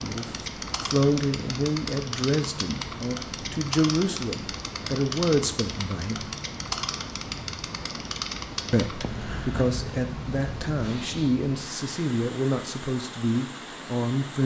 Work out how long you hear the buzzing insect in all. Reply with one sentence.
The buzzing insect can be heard for 11 seconds in total.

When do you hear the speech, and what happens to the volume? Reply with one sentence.
You can hear the speech from 0.0 to 6.2 s, getting quieter then louder; and from 8.7 to 14.4 s, at a steady volume.